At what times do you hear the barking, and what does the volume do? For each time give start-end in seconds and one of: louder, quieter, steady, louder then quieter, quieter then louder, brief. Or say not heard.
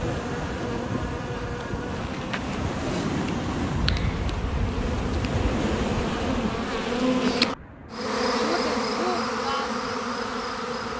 not heard.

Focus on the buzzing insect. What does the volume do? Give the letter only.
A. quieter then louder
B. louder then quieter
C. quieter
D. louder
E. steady
D.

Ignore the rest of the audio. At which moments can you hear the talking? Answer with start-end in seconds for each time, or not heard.
not heard.